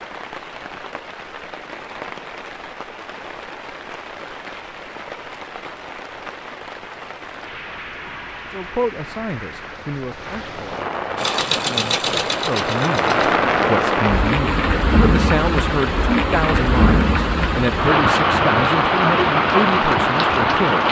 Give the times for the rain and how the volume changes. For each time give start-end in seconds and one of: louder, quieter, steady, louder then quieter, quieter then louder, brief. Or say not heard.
0.0-20.8 louder.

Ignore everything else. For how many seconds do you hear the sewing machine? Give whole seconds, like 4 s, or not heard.
2 s.